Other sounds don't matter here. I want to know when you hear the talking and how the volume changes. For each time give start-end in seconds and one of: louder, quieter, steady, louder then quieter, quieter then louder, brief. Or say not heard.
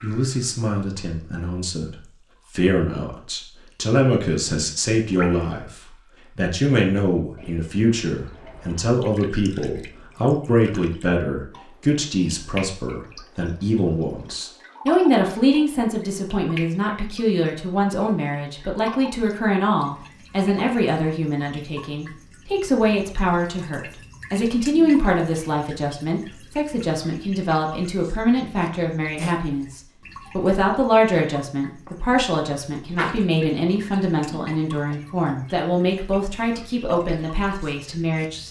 0.0-38.4 steady.